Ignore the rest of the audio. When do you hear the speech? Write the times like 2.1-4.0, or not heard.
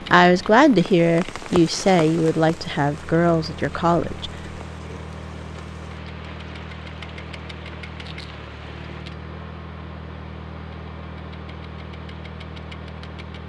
0.1-4.3.